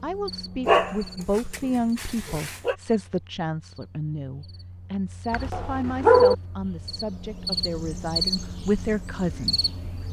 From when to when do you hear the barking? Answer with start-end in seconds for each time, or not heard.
0.7-2.8, 5.3-6.3.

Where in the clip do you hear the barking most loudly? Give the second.
6 s.